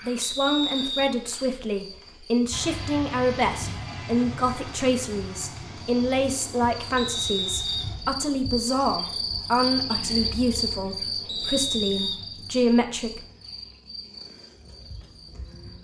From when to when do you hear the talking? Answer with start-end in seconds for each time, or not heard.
0.1-13.2.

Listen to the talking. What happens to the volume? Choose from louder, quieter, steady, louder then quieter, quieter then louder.
steady.